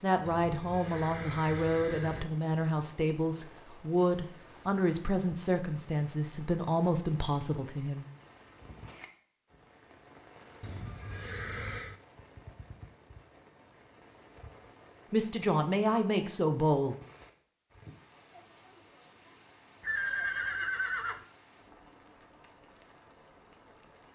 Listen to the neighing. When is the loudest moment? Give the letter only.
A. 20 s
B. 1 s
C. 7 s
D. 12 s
A.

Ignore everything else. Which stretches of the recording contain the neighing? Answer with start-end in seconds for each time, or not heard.
0.2-2.2, 10.6-11.9, 19.8-21.2.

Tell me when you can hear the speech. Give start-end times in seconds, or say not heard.
0.0-8.1, 15.1-16.9.